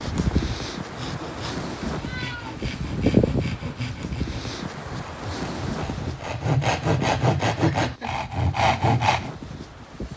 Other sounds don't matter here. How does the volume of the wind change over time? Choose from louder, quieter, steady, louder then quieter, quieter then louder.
louder then quieter.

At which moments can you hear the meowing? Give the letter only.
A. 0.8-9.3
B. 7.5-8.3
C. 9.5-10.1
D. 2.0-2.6
D.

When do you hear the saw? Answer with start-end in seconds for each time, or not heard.
0.8-9.3.